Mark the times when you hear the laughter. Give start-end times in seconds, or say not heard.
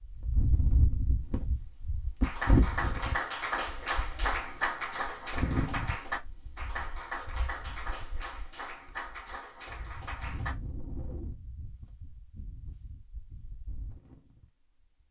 not heard.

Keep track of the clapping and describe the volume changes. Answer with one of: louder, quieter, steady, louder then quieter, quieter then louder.
quieter.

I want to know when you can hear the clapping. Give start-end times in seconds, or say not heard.
2.2-10.6.